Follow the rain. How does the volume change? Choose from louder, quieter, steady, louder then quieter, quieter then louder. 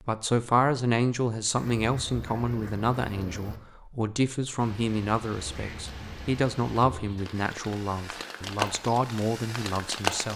louder then quieter.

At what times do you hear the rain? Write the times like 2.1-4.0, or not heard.
4.5-10.3.